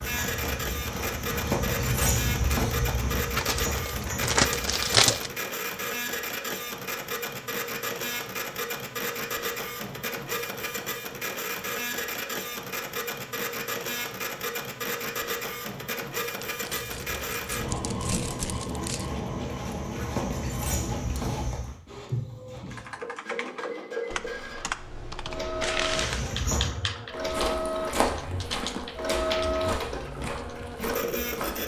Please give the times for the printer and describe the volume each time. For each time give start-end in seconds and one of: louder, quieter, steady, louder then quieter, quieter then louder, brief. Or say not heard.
0.0-31.6 steady.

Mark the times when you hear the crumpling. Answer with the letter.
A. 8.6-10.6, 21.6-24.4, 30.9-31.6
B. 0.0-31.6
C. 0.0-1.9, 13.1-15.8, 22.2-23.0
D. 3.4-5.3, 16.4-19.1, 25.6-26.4
D.